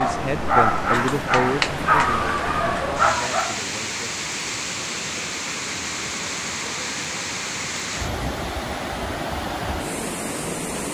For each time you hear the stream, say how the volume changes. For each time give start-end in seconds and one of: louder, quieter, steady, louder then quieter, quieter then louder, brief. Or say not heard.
0.0-10.8 steady.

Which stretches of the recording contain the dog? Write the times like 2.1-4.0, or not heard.
0.0-3.6.